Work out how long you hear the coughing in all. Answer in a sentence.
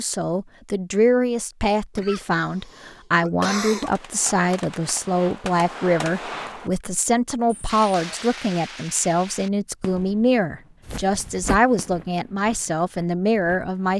The coughing can be heard for 2 seconds in total.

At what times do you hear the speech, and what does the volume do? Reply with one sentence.
The speech can be heard from 0.0 to 13.9 s, at a steady volume.